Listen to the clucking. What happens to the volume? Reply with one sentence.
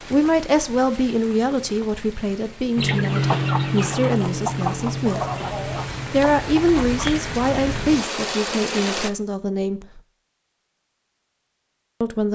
The loudness of the clucking goes down.